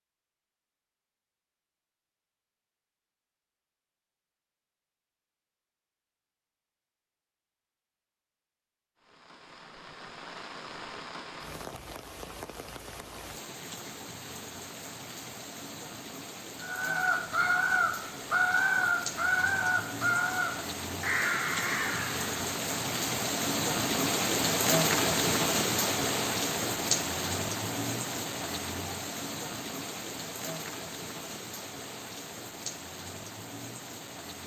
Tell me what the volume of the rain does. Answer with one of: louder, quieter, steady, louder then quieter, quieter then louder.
louder then quieter.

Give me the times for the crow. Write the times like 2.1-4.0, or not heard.
16.6-22.3.